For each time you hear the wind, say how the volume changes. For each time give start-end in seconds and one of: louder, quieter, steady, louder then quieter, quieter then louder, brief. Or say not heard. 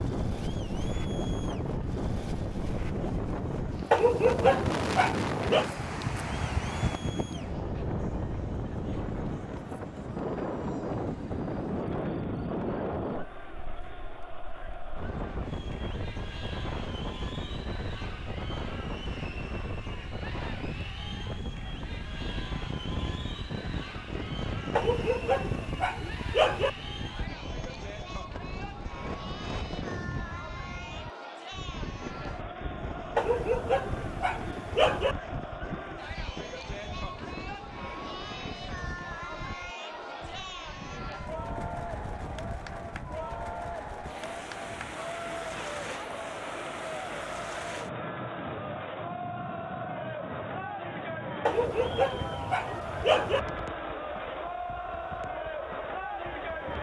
0.0-56.7 quieter.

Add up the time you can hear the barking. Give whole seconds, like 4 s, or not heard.
8 s.